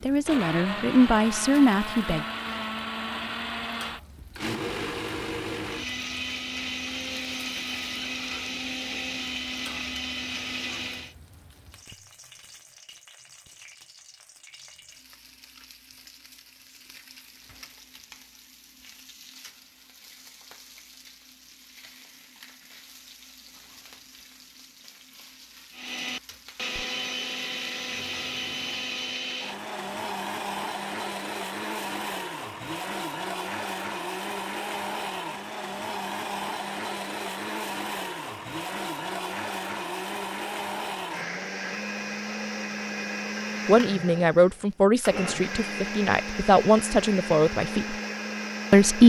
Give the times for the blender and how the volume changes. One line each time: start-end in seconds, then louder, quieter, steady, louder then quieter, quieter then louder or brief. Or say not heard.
0.2-11.2 steady
25.7-49.0 steady.